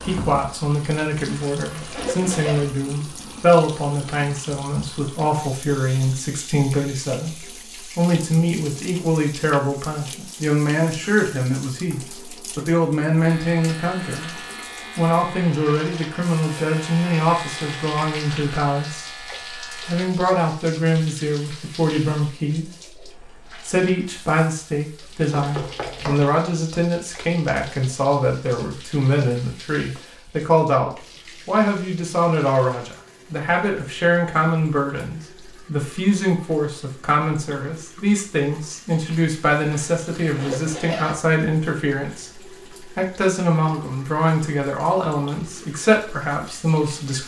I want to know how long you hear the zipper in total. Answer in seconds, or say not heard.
3 s.